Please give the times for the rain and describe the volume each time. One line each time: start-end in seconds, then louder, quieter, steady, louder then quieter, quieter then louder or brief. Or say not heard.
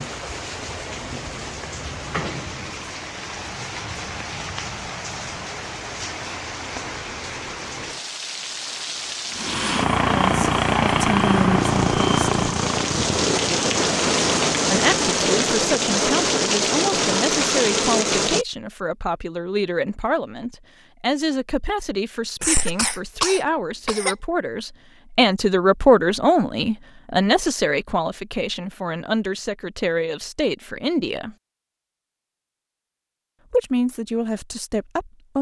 0.0-18.4 louder.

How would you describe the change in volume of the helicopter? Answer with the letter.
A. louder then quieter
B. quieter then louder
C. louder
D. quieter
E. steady
D.